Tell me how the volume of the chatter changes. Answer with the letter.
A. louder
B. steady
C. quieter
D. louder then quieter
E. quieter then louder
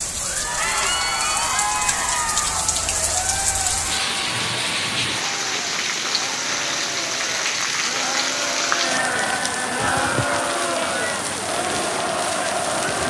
E.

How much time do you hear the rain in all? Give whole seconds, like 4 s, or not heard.
13 s.